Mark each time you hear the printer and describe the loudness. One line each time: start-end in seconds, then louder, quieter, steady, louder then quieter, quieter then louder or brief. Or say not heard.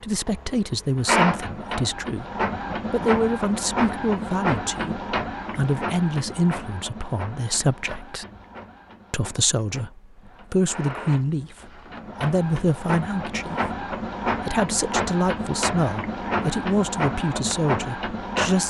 0.0-18.6 quieter then louder.